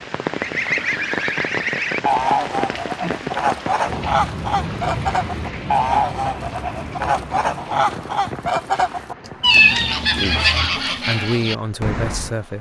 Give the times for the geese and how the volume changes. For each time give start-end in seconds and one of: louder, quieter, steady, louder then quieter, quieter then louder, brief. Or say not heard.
0.3-12.3 steady.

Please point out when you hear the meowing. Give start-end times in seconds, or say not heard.
9.4-10.8.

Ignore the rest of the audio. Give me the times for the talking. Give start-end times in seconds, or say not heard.
10.2-12.5.